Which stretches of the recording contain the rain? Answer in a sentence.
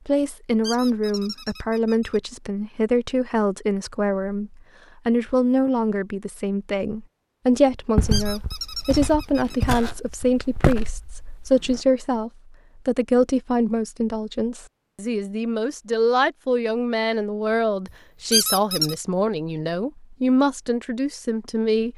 You can't hear the rain here.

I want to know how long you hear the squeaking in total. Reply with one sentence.
The squeaking can be heard for 4 seconds in total.